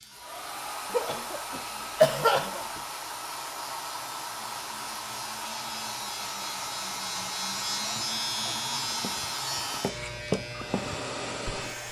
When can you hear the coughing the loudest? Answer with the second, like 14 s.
2 s.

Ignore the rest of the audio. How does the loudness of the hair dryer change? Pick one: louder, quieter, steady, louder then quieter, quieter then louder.
steady.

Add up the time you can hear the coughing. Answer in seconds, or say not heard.
3 s.